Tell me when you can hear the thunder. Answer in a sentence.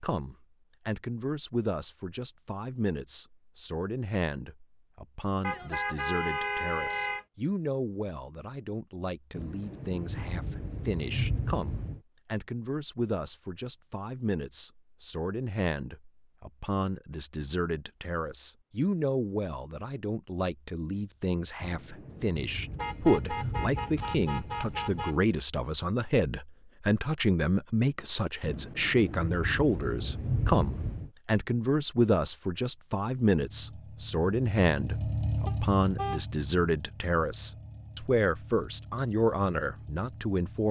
You can hear the thunder from 9.3 to 12.0 s, from 21.6 to 25.1 s and from 28.4 to 31.1 s.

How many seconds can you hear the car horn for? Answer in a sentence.
You can hear the car horn for 5 seconds altogether.